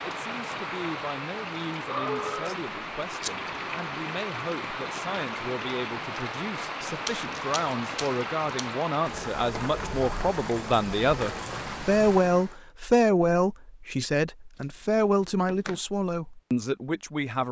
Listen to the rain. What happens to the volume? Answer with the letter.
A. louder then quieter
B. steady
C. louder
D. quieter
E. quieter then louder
B.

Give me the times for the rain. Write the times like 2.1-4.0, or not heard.
0.0-12.6.